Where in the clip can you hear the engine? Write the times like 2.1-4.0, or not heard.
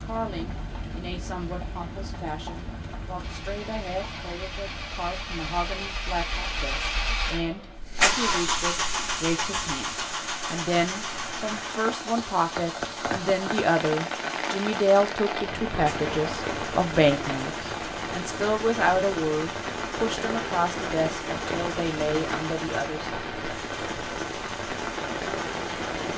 3.2-26.1.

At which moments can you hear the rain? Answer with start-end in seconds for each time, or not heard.
0.0-26.1.